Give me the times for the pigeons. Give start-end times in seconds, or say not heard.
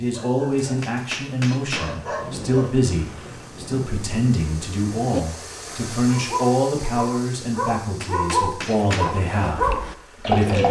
8.7-10.6.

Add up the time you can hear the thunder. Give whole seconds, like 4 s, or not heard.
3 s.